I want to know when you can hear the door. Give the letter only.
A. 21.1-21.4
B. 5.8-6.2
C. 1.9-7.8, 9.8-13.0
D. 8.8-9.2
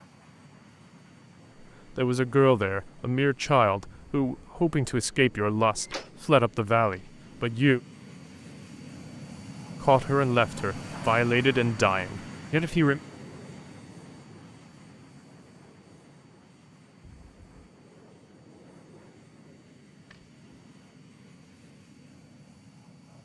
B.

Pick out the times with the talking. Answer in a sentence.
The talking can be heard from 1.9 to 7.8 s and from 9.8 to 13.0 s.